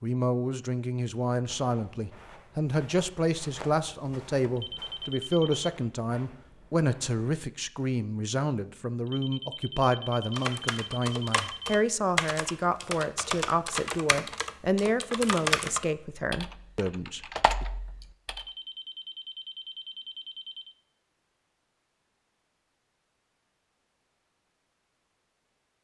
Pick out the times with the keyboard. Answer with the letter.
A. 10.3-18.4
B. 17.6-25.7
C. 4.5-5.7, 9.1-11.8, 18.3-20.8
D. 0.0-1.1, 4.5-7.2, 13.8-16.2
A.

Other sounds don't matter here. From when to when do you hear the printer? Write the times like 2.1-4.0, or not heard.
not heard.